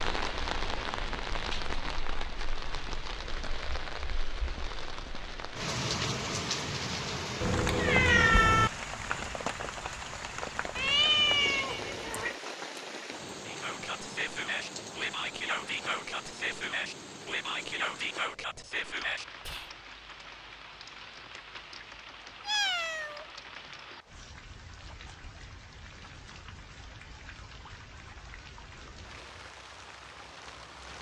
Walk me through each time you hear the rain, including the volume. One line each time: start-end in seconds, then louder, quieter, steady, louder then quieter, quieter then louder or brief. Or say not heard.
0.0-30.9 quieter.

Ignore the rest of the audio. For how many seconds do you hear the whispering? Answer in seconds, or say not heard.
6 s.